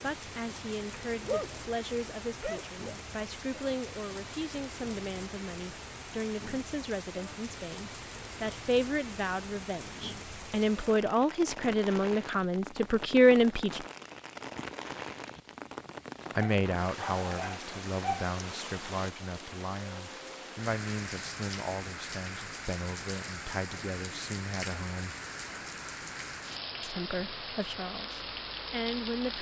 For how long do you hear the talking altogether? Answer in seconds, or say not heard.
25 s.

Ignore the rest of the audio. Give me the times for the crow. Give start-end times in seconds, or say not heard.
not heard.